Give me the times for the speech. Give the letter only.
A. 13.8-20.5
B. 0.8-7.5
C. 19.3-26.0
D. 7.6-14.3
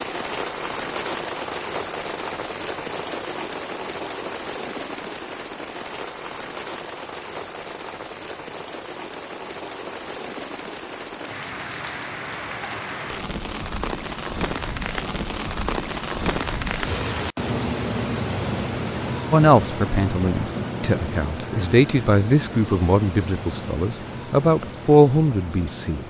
C.